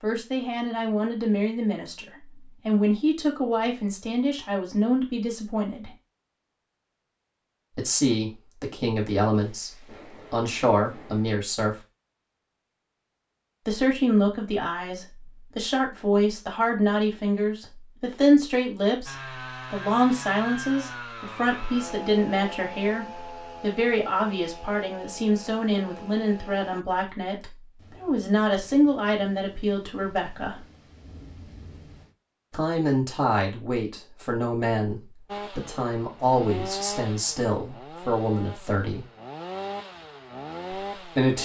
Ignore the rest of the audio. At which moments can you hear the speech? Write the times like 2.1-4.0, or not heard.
0.0-5.9, 7.8-9.7, 10.3-11.8, 13.7-30.6, 32.5-39.0, 41.0-41.4.